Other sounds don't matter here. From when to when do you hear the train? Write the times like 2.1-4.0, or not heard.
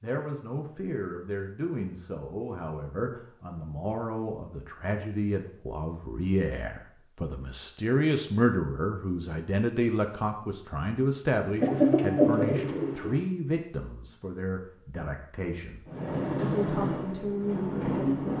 15.8-18.3.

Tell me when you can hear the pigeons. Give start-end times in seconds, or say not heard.
11.6-13.2.